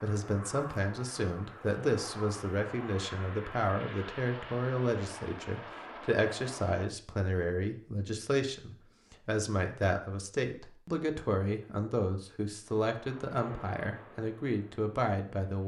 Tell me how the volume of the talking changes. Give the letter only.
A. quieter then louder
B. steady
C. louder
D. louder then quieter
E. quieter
B.